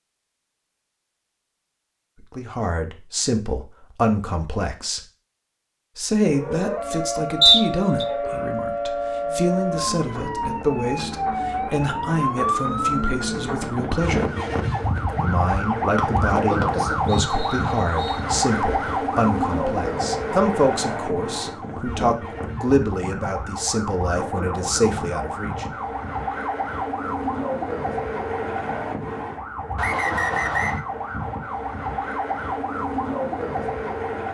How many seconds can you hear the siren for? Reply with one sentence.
You can hear the siren for 28 seconds altogether.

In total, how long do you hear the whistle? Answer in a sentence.
You can hear the whistle for 4 seconds altogether.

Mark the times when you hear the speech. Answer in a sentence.
The speech can be heard from 2.2 to 5.0 s, from 6.0 to 14.3 s and from 15.2 to 25.6 s.